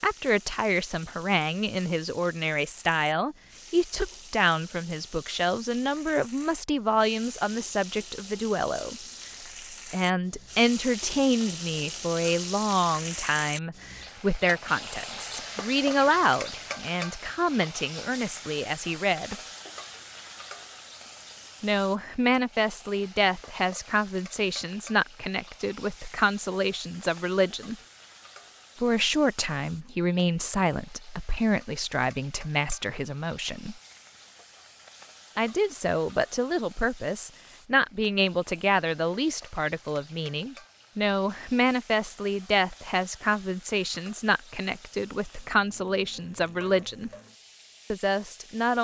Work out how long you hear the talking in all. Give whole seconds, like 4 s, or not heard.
42 s.